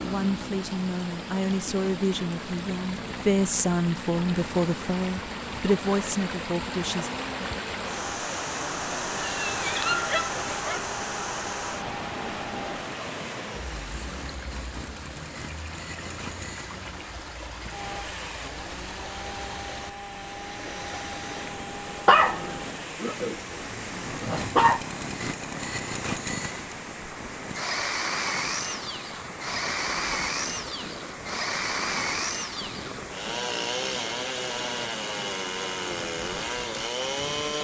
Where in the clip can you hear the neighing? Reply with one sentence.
You can't hear the neighing here.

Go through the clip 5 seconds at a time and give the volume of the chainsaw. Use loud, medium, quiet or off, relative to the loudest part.
medium, medium, medium, medium, medium, loud, loud, loud.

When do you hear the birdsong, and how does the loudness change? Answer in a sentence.
The birdsong can't be heard in this clip.